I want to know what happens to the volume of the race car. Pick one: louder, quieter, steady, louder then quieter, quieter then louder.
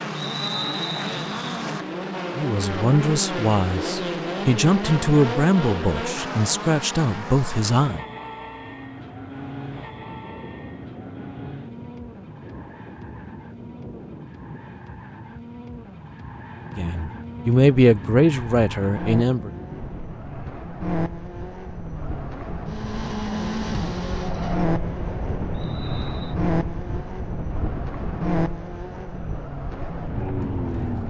quieter then louder.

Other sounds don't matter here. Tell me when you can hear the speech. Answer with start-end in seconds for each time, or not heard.
2.4-8.0, 16.8-19.5.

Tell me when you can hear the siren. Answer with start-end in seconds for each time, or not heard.
not heard.